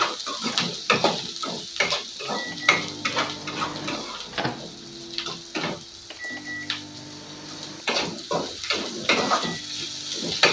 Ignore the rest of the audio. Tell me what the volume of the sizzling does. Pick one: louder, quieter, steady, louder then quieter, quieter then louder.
quieter then louder.